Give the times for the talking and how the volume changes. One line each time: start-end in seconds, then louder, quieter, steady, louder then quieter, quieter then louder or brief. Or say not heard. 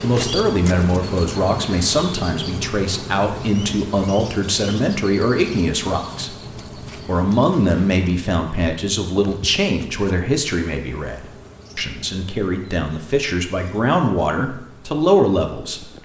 0.0-6.3 steady
7.0-16.0 quieter then louder.